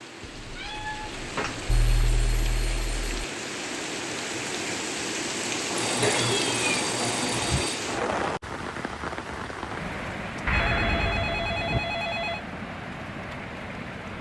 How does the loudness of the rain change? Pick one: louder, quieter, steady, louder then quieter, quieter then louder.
louder then quieter.